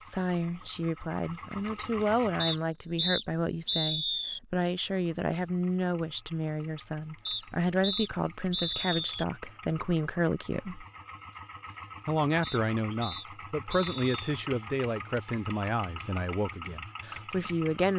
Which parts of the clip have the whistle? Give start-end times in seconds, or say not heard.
2.4-4.4, 7.2-9.2, 12.4-14.2.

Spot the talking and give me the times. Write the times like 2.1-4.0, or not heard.
0.0-10.8, 12.1-17.9.